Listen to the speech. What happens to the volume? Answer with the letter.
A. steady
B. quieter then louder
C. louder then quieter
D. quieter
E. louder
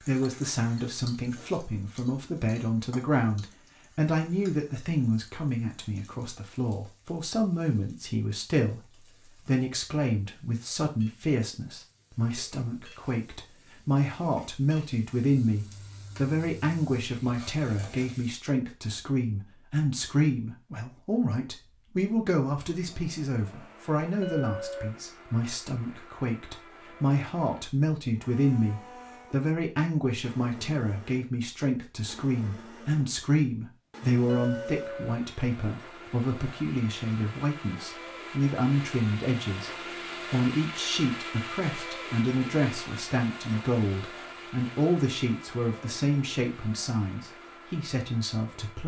A.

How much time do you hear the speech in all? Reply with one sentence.
The speech can be heard for 48 seconds in total.